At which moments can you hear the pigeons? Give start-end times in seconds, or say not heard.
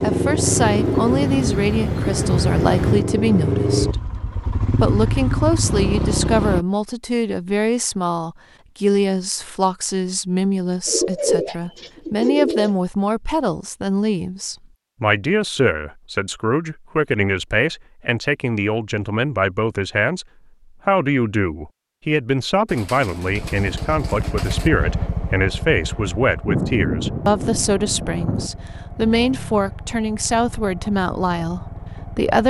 0.4-3.0, 10.8-12.8, 22.6-24.7.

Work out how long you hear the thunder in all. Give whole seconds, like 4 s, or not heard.
2 s.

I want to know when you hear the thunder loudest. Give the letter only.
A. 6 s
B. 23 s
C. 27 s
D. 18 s
C.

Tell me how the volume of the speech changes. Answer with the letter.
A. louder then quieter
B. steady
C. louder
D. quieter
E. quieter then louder
B.